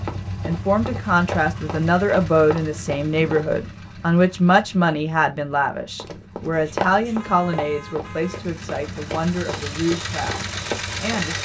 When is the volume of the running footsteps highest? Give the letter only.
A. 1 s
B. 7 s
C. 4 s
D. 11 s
B.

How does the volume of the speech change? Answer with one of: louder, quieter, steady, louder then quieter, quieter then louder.
quieter.